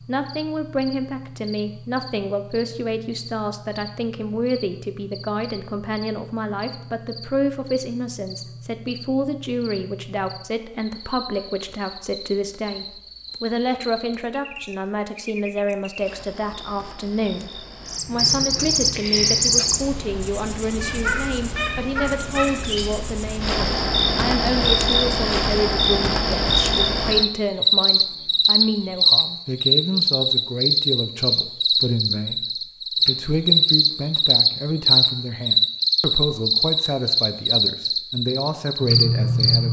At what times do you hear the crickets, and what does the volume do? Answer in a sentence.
You can hear the crickets from 0.0 to 39.6 s, getting louder.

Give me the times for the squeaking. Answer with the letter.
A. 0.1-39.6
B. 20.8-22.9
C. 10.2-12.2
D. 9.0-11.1
B.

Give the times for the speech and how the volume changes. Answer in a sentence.
You can hear the speech from 0.1 to 39.6 s, at a steady volume.